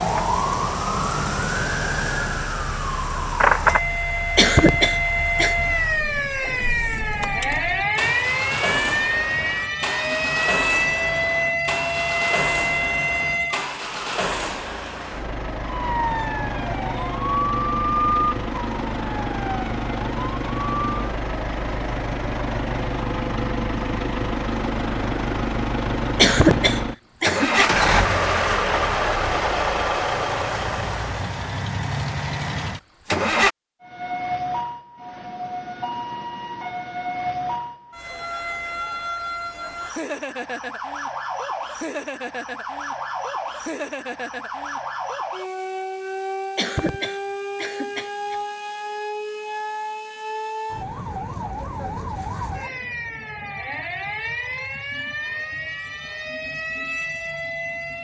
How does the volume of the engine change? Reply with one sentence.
The volume of the engine goes up.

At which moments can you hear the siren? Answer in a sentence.
You can hear the siren from 0.0 to 13.7 s, from 15.6 to 20.9 s and from 33.8 to 57.9 s.